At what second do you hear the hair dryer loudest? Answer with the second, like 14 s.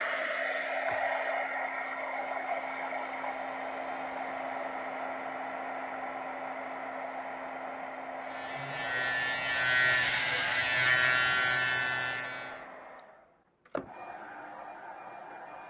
1 s.